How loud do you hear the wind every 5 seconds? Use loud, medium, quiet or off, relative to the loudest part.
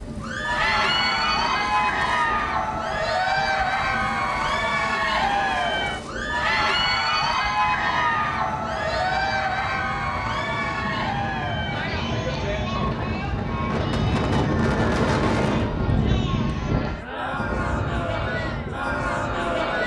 medium, medium, loud, loud.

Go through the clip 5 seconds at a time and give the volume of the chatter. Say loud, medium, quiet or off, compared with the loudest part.
loud, loud, medium, medium.